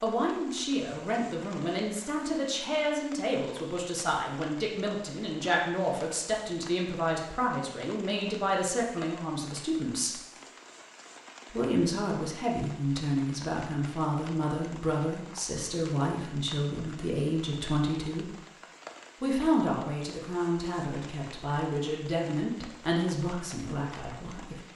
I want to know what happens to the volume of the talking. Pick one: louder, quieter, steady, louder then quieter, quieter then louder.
steady.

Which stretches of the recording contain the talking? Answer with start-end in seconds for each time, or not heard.
0.0-10.2, 11.5-18.4, 19.2-24.6.